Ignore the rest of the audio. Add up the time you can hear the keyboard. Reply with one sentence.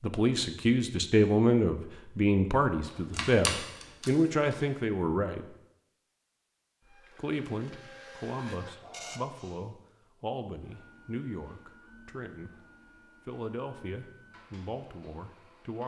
You can hear the keyboard for 2 seconds altogether.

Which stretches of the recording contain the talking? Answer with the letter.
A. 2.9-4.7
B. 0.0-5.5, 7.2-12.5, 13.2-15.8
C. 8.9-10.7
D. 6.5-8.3
B.